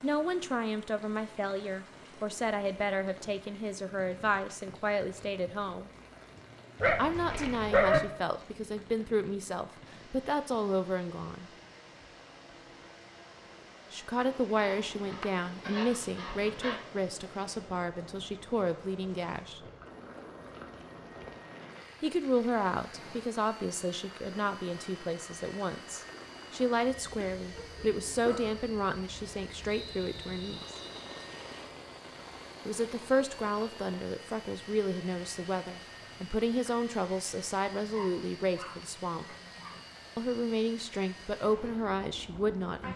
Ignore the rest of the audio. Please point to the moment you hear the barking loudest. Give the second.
8 s.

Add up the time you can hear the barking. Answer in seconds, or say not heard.
7 s.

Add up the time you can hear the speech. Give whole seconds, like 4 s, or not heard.
34 s.